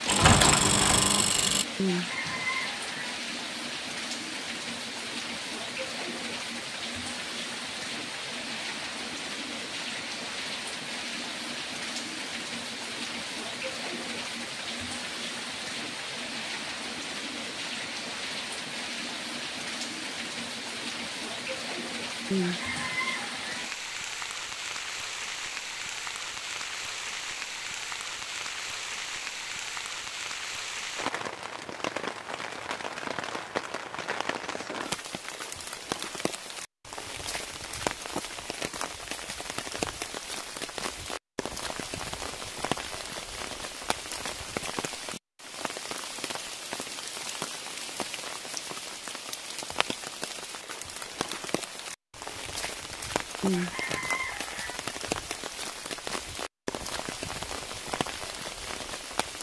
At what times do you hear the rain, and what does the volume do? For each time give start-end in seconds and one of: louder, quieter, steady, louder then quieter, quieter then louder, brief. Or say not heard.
0.0-59.3 steady.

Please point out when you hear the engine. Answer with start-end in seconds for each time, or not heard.
0.0-1.6.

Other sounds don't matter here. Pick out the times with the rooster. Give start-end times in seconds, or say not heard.
1.8-3.1, 22.3-23.6, 53.4-54.8.